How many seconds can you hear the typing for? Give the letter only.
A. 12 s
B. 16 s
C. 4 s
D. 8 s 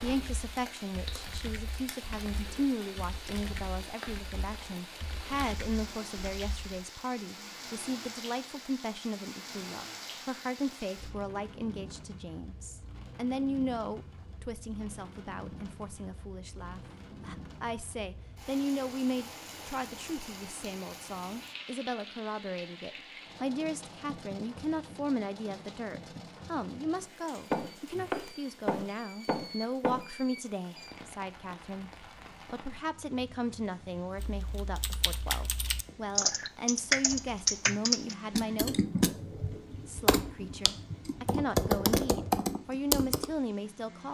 B.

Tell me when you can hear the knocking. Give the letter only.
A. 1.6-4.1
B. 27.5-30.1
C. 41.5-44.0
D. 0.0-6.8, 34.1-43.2
B.